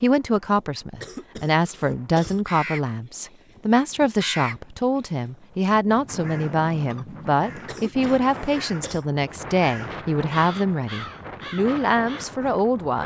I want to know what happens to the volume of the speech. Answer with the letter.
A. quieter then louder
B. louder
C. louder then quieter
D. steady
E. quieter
D.